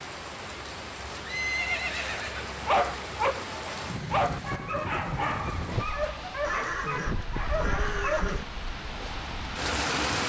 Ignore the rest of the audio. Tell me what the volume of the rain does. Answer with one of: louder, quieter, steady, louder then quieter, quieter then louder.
steady.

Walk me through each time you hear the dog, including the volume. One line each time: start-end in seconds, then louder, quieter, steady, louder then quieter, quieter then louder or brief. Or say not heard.
2.6-8.3 quieter.